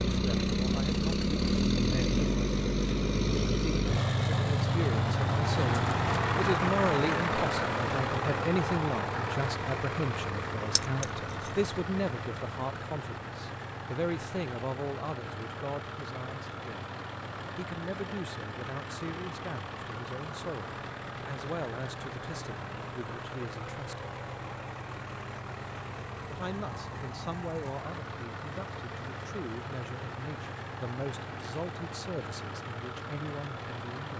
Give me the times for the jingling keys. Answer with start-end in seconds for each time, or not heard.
10.8-11.5.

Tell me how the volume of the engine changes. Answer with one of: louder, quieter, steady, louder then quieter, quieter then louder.
quieter.